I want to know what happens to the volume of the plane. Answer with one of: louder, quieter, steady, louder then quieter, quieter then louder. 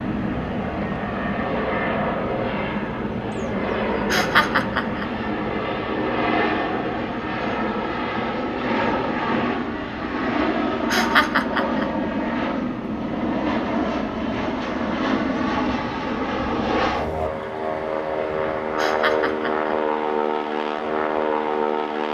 steady.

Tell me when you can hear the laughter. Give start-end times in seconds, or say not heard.
4.1-5.0, 10.9-11.8, 18.8-19.7.